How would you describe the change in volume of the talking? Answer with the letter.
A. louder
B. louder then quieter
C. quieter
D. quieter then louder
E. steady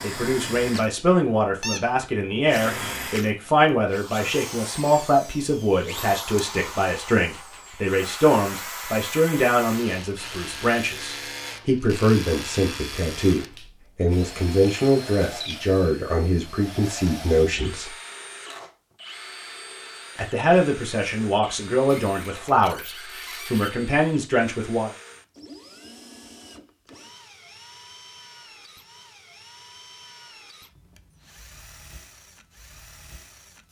E.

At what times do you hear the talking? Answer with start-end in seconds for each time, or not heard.
0.0-17.9, 20.1-24.9.